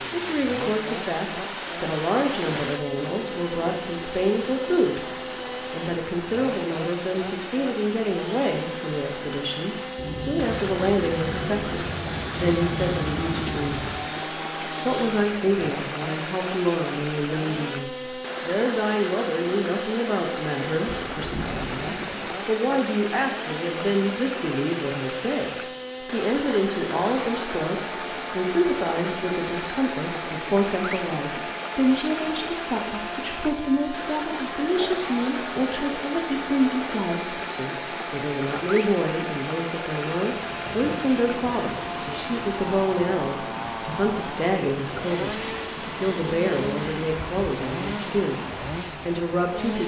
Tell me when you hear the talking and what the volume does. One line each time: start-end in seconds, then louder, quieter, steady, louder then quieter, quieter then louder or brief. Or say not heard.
0.1-5.0 steady
5.7-13.9 steady
14.8-48.4 steady
49.0-49.8 brief.